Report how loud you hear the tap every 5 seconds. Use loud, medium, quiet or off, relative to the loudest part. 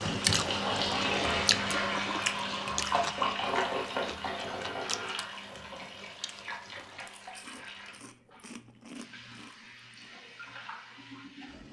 loud, quiet, quiet.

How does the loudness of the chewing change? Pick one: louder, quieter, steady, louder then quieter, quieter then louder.
quieter.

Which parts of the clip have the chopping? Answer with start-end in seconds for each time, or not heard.
not heard.